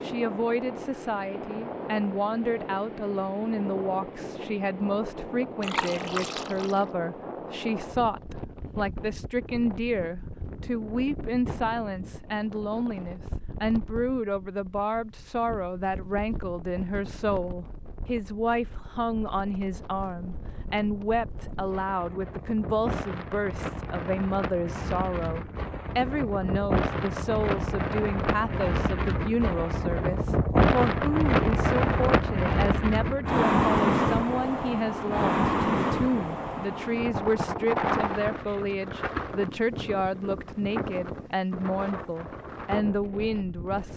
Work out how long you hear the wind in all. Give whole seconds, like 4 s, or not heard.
44 s.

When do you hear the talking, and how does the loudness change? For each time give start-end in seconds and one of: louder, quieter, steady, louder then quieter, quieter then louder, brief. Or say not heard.
0.0-43.9 steady.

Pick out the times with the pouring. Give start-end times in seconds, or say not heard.
5.6-6.8.